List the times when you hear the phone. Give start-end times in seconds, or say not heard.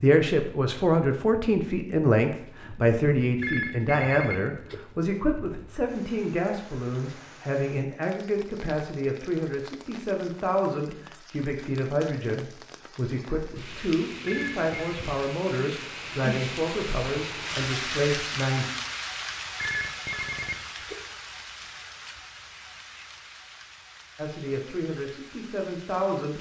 3.4-4.8, 14.2-15.0, 19.6-20.9.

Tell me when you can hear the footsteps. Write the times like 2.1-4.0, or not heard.
not heard.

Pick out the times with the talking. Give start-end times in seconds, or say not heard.
0.0-18.6, 24.1-26.3.